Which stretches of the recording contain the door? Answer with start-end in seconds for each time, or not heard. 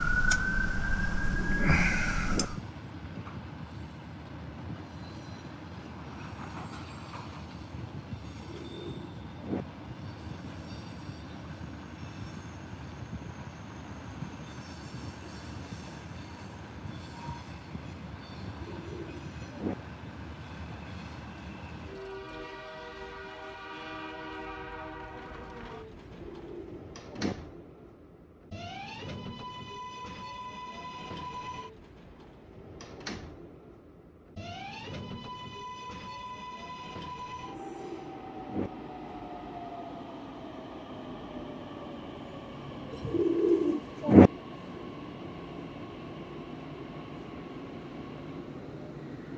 not heard.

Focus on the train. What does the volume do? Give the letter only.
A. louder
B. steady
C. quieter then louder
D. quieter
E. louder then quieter
B.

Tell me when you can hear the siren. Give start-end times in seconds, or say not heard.
0.0-2.6.